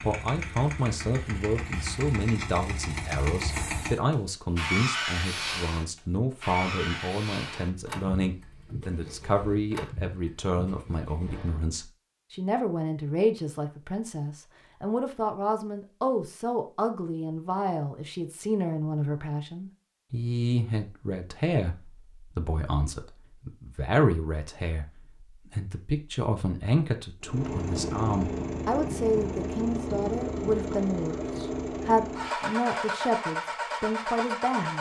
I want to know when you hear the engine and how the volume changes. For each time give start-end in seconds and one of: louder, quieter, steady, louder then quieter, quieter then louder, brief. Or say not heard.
0.0-11.6 louder then quieter
27.2-34.7 steady.